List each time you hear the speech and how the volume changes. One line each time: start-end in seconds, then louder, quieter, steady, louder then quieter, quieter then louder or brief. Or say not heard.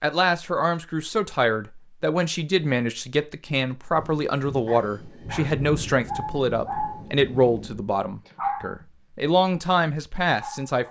0.0-10.8 steady.